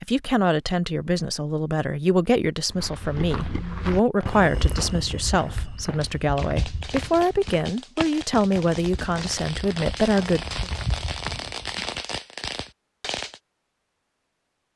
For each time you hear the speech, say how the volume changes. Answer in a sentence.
You can hear the speech from 0.0 to 10.7 s, at a steady volume.